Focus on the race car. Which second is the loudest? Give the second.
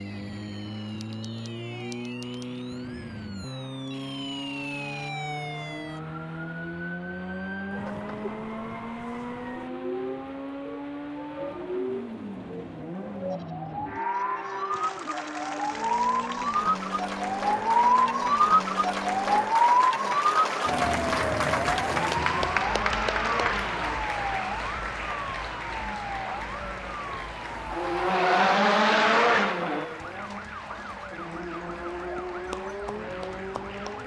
29 s.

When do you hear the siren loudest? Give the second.
18 s.